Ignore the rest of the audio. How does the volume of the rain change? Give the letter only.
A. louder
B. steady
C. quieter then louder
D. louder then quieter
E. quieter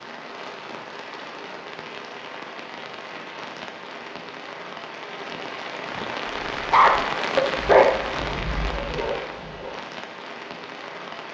D.